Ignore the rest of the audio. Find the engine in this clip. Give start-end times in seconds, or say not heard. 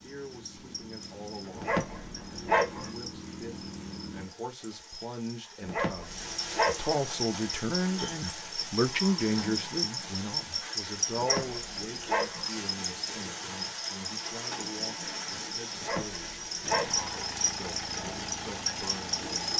0.0-4.3, 16.6-19.5.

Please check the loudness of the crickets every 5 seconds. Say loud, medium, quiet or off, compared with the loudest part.
quiet, loud, loud, loud.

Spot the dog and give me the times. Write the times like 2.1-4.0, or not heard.
1.5-2.9, 5.6-7.0, 11.1-12.5, 15.7-17.1.